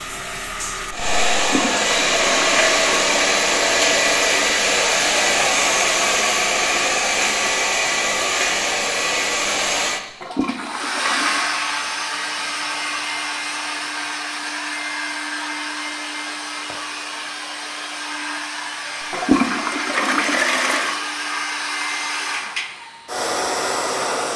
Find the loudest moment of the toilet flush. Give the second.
20 s.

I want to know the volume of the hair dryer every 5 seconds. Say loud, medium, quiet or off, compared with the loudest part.
loud, loud, medium, medium, medium.